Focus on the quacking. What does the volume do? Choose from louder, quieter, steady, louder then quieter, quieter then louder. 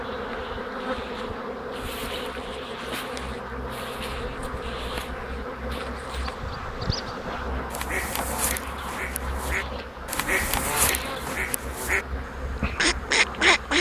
louder.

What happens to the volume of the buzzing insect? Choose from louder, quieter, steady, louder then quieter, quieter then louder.
steady.